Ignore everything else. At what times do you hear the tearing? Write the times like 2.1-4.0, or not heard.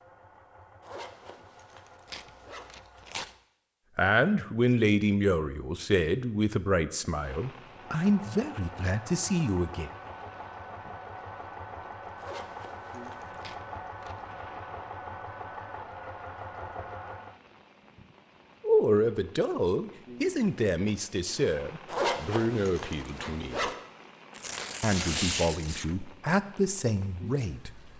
2.1-3.4, 13.4-14.3, 24.3-25.9.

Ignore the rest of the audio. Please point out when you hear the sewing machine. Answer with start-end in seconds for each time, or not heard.
0.0-3.2, 7.7-17.4.